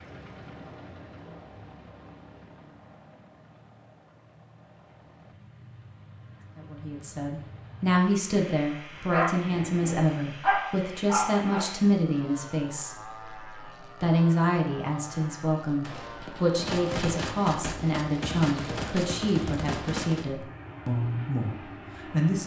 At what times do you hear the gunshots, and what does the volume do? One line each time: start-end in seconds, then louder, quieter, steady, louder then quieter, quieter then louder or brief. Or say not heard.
15.8-20.2 steady.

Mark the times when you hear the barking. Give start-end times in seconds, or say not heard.
8.9-11.7.